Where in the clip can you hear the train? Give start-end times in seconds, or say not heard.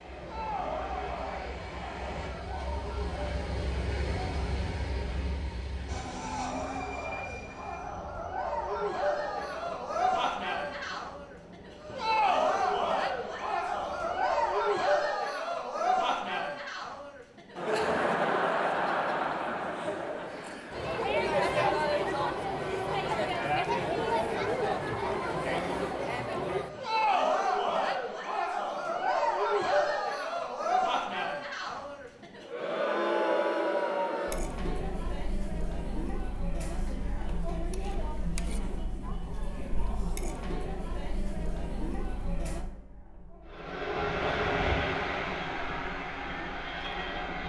0.0-14.8, 43.5-47.4.